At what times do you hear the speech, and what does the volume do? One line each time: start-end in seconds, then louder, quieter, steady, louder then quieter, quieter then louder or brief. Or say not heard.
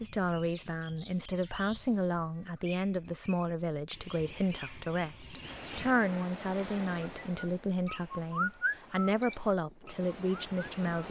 0.0-11.0 steady.